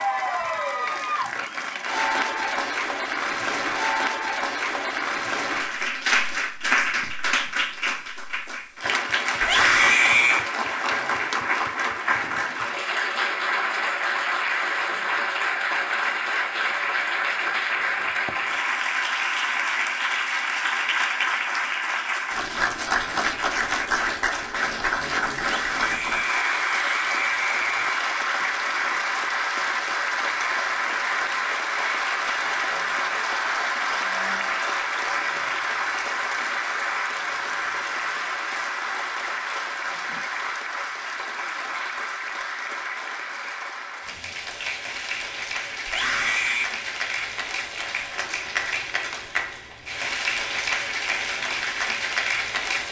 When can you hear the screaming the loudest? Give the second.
10 s.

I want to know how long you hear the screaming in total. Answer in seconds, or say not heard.
4 s.